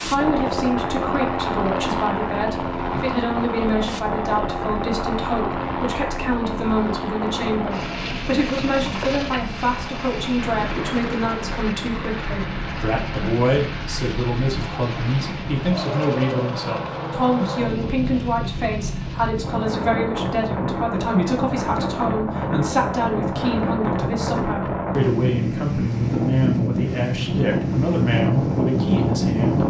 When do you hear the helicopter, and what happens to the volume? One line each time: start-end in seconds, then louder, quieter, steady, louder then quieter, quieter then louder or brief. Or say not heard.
0.0-19.6 quieter.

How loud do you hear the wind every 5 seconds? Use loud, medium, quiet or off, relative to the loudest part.
quiet, quiet, quiet, medium, loud, loud.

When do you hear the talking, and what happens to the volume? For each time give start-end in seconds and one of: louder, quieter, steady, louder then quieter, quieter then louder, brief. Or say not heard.
0.0-29.6 steady.